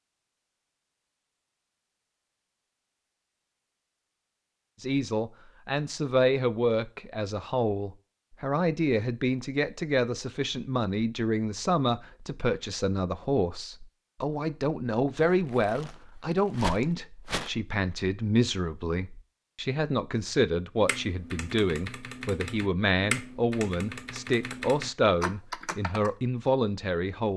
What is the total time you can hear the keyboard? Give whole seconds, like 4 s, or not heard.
5 s.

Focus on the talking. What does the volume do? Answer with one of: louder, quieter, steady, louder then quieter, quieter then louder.
steady.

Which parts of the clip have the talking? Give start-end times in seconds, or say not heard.
4.8-27.3.